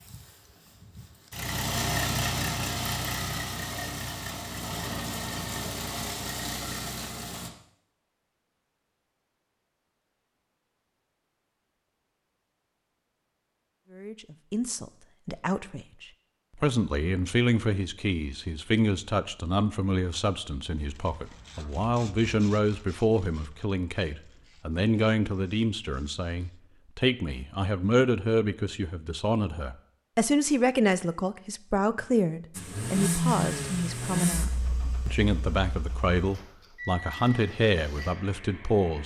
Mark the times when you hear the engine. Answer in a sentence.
The engine can be heard from 0.0 to 7.5 s and from 32.5 to 39.0 s.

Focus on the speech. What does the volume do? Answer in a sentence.
The volume of the speech stays about the same.